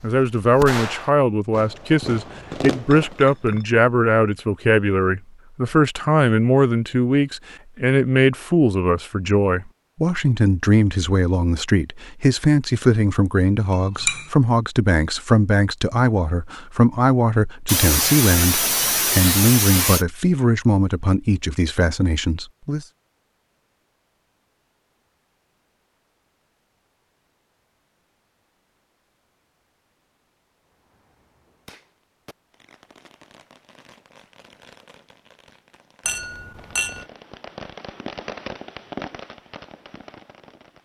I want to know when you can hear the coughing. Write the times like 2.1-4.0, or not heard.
17.6-20.1.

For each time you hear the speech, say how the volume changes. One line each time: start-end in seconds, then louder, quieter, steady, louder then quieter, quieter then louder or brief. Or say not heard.
0.0-22.9 steady.